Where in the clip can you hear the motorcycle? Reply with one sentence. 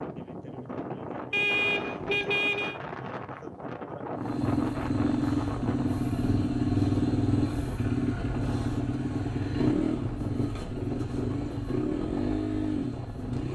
The motorcycle can be heard from 4.2 to 13.5 s.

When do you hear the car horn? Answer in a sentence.
You can hear the car horn from 1.3 to 2.8 s.